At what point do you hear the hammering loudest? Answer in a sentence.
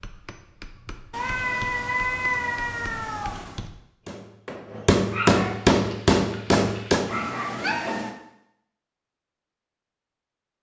The volume of the hammering peaks at 6 seconds.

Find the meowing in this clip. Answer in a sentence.
You can hear the meowing from 1.1 to 3.7 s and from 7.1 to 8.2 s.